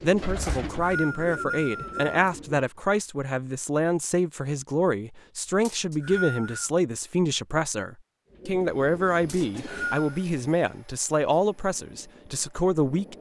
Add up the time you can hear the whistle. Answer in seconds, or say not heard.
4 s.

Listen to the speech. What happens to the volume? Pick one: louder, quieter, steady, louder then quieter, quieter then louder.
steady.